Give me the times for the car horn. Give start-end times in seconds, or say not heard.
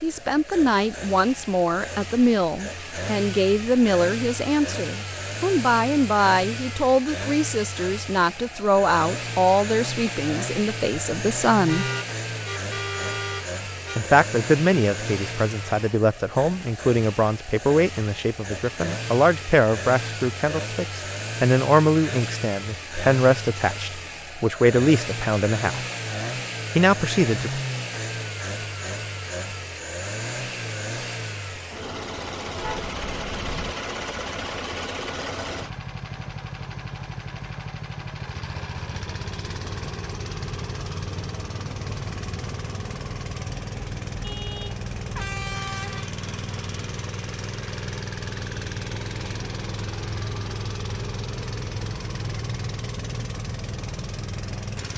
11.7-14.1, 32.6-33.7, 44.2-46.1.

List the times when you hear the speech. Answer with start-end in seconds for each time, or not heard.
0.0-11.8, 13.9-25.8, 26.8-27.6.